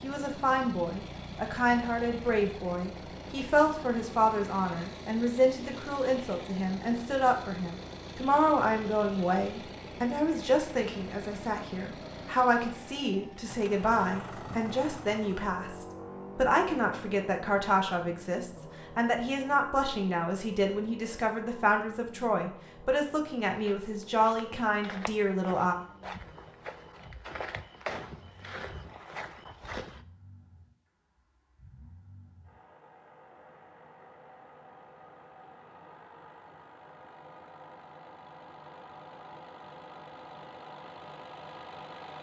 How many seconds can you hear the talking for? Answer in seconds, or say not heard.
26 s.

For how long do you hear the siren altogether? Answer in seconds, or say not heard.
not heard.